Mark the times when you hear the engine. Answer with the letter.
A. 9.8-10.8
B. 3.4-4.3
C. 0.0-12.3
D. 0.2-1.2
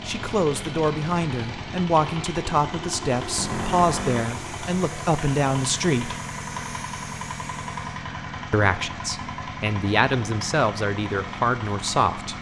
C.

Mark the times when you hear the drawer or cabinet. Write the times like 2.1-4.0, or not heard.
3.4-4.3.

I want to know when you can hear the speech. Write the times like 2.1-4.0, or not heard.
0.1-6.2, 8.5-12.3.